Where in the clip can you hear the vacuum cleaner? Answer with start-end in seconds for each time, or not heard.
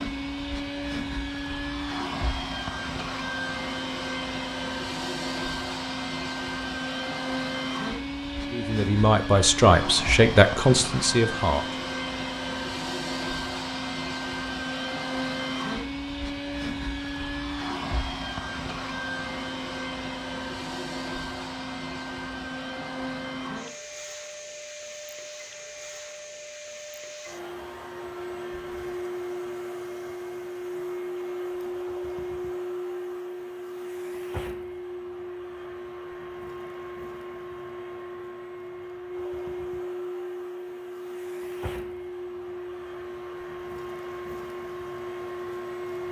0.0-46.0.